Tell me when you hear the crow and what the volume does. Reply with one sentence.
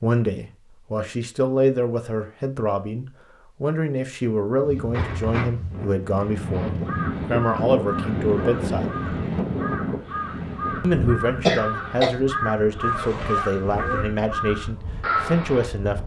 You can hear the crow from 6.5 to 15.7 s, getting louder.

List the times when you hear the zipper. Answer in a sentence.
The zipper can be heard from 4.9 to 5.5 s and from 12.8 to 14.1 s.